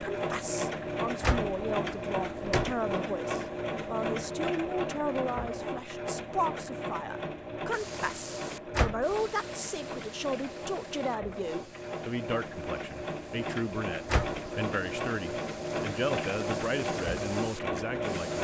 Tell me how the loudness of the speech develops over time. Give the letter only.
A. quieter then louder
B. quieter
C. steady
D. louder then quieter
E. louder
C.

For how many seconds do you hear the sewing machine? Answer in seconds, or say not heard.
18 s.